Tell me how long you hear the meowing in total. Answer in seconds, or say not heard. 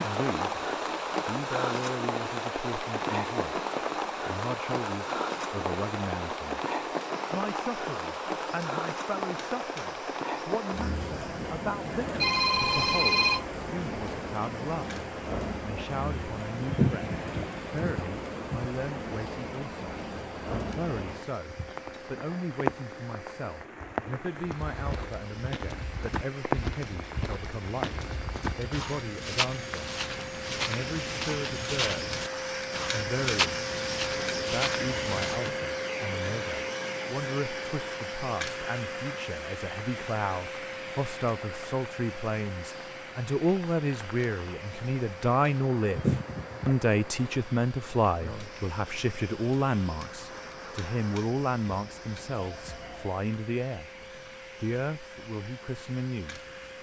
3 s.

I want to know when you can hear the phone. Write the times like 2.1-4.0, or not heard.
12.2-13.4.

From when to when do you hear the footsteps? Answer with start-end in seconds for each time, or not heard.
24.5-35.5.